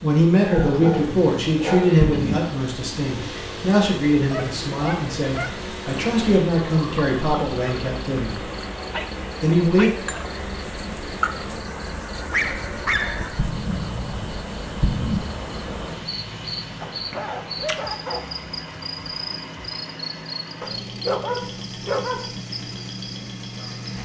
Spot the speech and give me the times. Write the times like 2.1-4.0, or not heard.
0.0-8.4, 9.4-9.9.